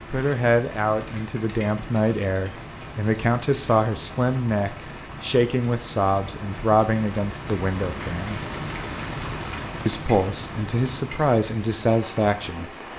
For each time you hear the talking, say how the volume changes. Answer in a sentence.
The talking can be heard from 0.1 to 8.4 s, at a steady volume; and briefly from 9.8 to 12.7 s.